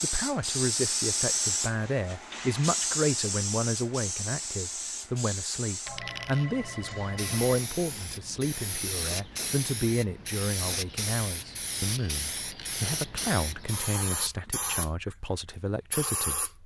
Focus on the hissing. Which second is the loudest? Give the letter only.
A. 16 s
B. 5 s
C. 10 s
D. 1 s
D.